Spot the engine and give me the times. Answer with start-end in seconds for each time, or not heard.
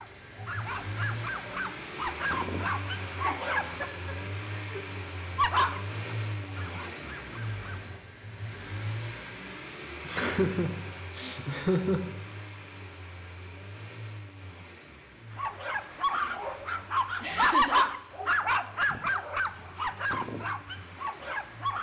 0.0-21.7.